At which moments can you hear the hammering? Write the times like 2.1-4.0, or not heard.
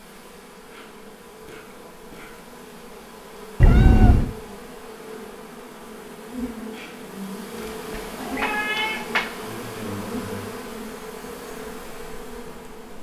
not heard.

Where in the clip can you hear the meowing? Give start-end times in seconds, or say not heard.
3.6-4.3, 7.9-9.5.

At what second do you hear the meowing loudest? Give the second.
4 s.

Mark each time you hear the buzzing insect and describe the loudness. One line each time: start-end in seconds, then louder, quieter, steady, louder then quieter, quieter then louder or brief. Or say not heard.
0.0-12.9 louder.